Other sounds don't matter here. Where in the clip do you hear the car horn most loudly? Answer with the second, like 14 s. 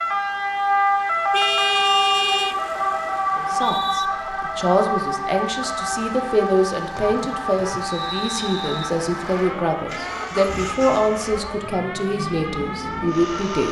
2 s.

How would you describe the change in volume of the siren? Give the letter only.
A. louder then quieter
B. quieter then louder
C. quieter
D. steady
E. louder
C.